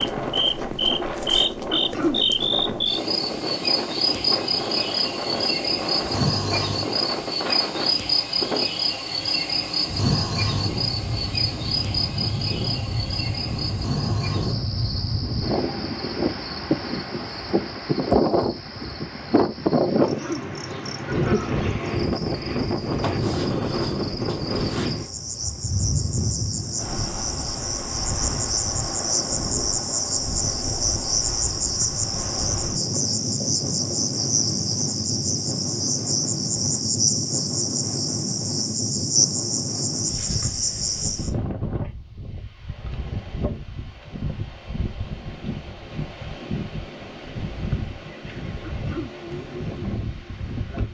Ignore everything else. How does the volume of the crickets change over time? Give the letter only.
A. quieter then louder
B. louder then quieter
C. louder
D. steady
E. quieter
A.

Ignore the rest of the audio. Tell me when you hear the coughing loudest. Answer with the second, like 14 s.
2 s.